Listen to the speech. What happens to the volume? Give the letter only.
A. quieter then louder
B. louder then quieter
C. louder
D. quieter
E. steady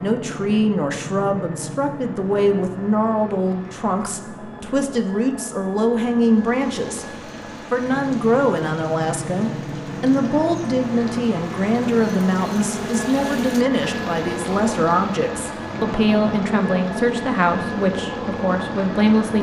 E.